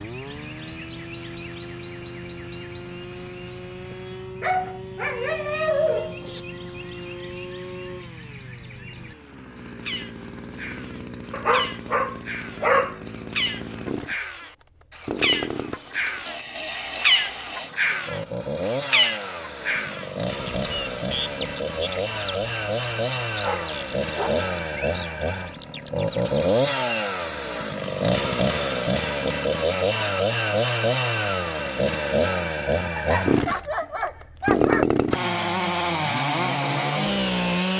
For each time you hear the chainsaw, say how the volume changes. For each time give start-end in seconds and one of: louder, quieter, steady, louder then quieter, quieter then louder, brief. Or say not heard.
0.0-37.7 louder.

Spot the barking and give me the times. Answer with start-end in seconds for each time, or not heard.
4.4-6.4, 11.3-12.9, 23.4-24.5, 33.0-34.9.